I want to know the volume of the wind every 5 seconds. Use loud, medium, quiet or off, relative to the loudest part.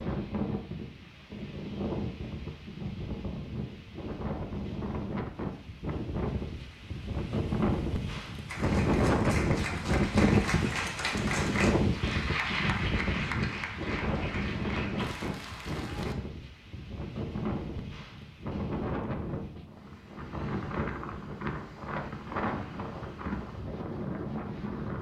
medium, loud, loud, medium, medium.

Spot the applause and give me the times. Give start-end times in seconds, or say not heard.
8.4-16.1.